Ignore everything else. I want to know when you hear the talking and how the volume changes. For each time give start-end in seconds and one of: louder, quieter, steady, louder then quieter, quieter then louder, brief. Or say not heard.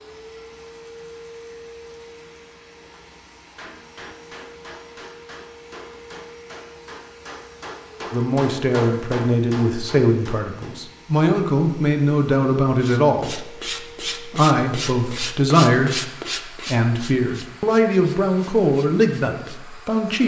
8.1-20.2 steady.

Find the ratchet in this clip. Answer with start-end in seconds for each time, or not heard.
not heard.